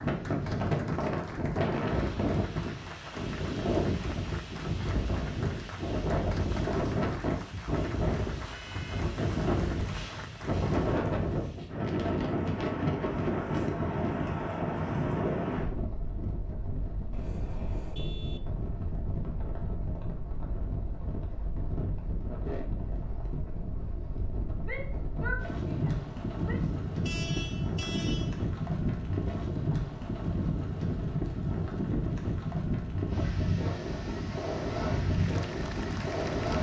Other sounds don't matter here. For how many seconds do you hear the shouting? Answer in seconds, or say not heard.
2 s.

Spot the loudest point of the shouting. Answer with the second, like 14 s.
25 s.